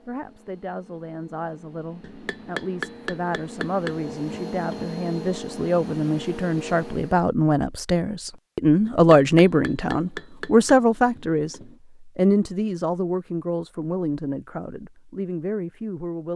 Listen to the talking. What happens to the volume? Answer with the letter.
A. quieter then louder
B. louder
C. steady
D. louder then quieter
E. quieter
D.